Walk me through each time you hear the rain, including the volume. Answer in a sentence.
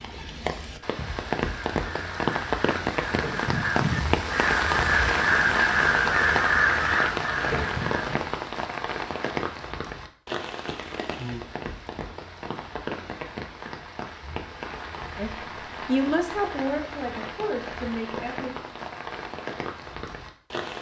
The rain can be heard from 0.0 to 20.7 s, getting quieter.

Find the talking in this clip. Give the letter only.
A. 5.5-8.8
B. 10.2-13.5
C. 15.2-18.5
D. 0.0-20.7
C.